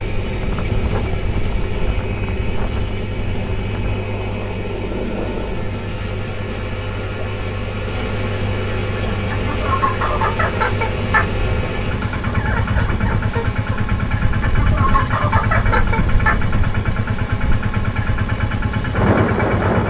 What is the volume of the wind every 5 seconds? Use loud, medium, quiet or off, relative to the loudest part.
medium, medium, medium, loud.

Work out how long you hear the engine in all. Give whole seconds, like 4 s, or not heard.
20 s.